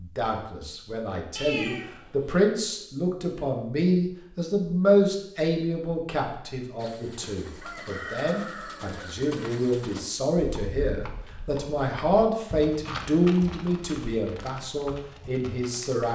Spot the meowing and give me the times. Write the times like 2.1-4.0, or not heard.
1.4-2.4.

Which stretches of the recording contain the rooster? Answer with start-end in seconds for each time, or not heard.
7.4-9.3.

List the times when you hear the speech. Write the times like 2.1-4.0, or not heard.
0.0-16.1.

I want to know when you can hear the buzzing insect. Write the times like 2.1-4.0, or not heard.
not heard.